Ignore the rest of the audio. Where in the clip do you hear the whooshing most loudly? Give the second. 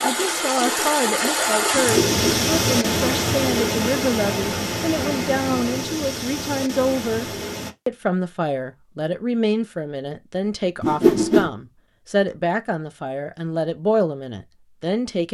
11 s.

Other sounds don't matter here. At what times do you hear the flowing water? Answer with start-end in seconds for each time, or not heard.
0.0-7.8.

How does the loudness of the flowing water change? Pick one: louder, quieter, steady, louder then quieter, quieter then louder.
quieter.